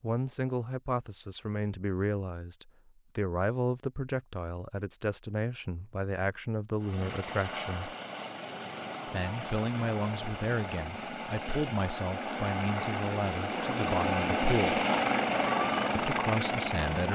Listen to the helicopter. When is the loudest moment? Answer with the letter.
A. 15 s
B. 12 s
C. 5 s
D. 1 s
A.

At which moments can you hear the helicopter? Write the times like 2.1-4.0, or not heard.
6.8-17.1.